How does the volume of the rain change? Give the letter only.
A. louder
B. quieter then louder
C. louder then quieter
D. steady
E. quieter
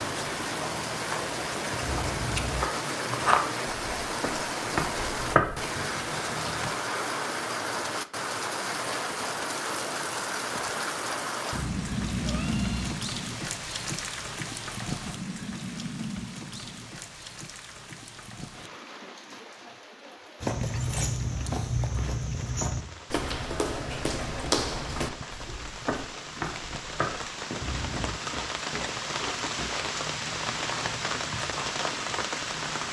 B.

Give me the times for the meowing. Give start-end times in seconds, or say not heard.
1.8-2.7, 11.5-13.0, 27.6-28.2.